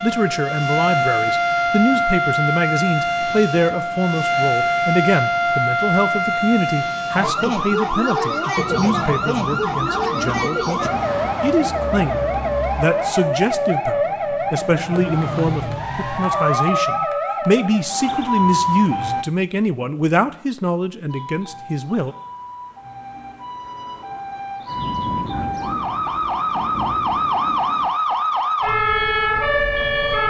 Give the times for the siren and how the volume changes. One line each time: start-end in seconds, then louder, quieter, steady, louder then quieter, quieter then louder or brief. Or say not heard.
0.0-19.2 steady
21.1-30.2 louder.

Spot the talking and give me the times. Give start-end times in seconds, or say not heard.
0.0-22.1.